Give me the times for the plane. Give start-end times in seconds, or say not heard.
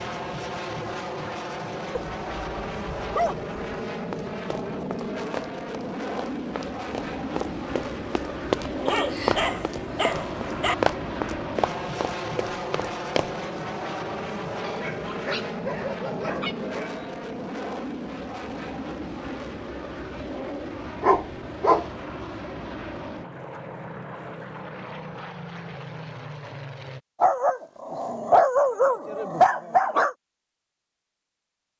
0.0-27.0.